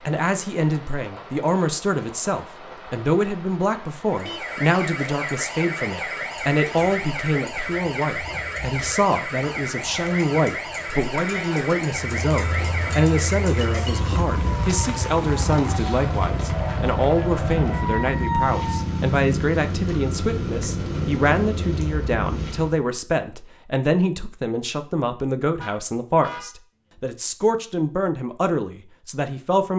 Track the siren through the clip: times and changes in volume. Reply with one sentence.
You can hear the siren from 4.0 to 18.8 s, at a steady volume.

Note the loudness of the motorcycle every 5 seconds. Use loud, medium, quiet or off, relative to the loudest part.
off, off, medium, loud, loud, off.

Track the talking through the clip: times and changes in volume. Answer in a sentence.
You can hear the talking from 0.1 to 29.7 s, at a steady volume.